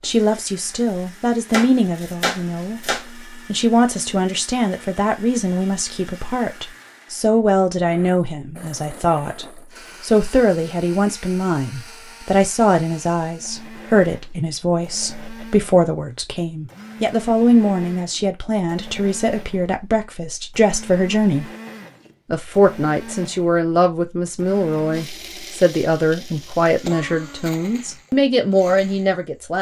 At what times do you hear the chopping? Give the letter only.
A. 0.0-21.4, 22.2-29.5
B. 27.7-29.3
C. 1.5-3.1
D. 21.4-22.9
C.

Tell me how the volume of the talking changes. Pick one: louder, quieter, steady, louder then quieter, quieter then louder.
steady.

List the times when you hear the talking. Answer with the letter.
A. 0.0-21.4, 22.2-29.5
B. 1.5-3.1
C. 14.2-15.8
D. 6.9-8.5
A.